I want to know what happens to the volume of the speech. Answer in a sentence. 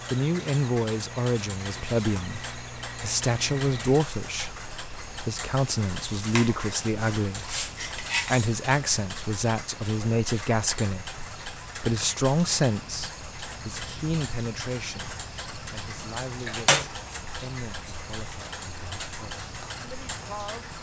The volume of the speech goes down.